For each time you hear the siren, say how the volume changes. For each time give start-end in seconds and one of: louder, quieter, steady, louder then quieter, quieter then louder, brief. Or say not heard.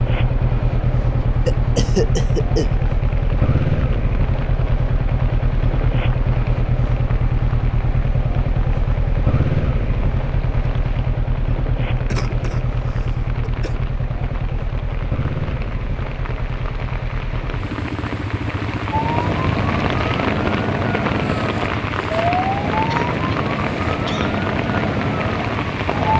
18.9-26.1 steady.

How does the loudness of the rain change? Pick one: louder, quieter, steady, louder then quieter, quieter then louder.
louder.